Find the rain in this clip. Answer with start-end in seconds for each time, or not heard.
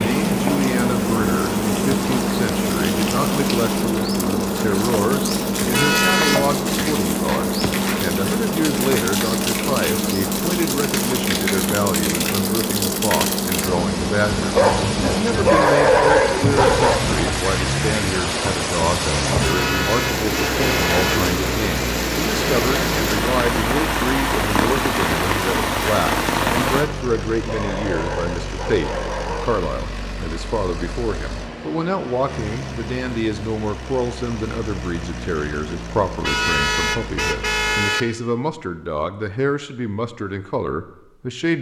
0.0-26.9.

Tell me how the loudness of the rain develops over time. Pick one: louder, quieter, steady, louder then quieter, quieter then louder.
louder.